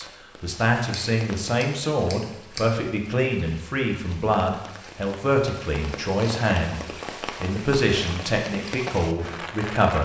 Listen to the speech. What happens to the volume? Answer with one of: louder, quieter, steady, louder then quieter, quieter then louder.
steady.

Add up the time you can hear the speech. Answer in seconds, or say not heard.
10 s.